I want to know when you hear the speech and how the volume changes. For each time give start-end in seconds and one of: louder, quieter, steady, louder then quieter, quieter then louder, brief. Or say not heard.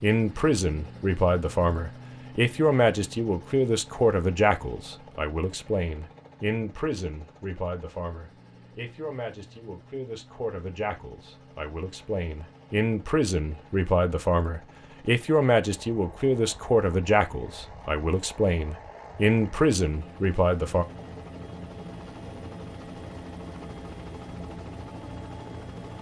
0.0-20.9 quieter then louder.